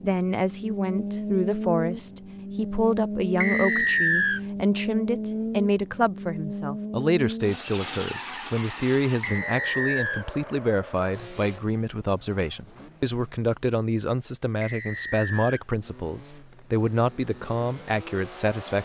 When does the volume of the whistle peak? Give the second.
4 s.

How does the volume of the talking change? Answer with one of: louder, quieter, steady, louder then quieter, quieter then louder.
steady.